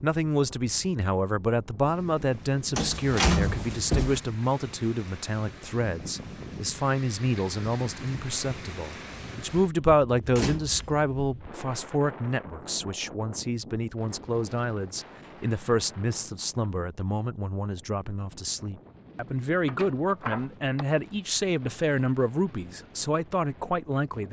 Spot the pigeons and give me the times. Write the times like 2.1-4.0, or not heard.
not heard.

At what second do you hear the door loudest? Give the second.
3 s.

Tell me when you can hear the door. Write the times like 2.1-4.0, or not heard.
2.8-4.2, 10.3-10.8, 19.6-20.9.